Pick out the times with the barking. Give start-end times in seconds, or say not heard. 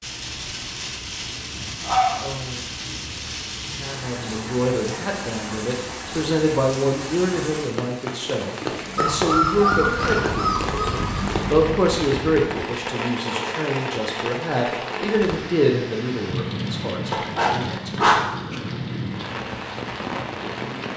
1.8-2.6, 8.9-11.2, 17.1-18.3.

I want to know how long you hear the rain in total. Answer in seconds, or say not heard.
21 s.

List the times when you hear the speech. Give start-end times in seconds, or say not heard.
3.8-17.9.